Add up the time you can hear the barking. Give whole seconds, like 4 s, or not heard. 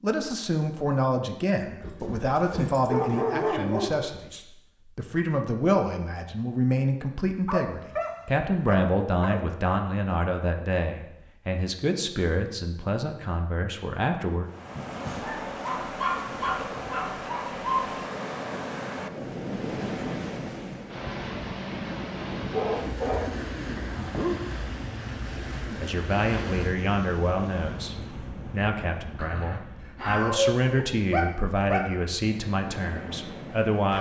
12 s.